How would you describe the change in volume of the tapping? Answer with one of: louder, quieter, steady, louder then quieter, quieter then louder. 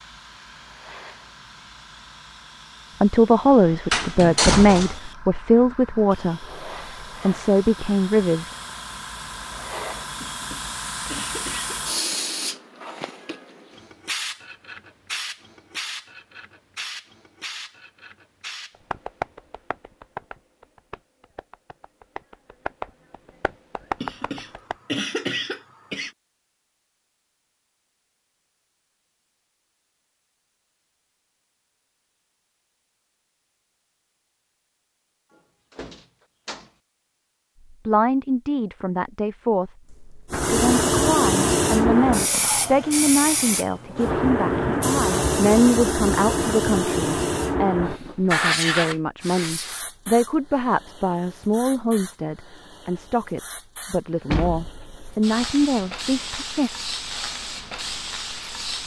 quieter then louder.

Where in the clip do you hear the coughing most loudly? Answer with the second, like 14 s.
25 s.